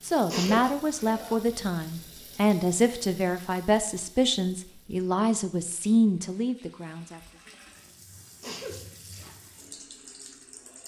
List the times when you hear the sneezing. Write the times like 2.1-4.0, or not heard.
0.3-1.4, 8.4-9.2.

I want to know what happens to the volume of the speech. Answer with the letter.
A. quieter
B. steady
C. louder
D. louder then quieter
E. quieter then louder
B.